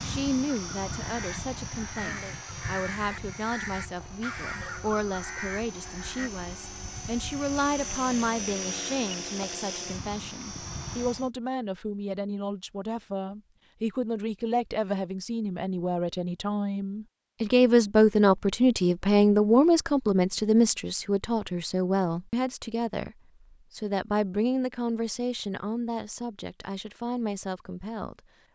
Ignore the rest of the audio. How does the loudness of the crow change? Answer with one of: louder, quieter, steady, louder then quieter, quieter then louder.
steady.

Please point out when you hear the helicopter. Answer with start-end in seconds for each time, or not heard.
0.0-11.3.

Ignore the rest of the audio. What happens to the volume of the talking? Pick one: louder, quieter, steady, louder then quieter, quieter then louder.
louder then quieter.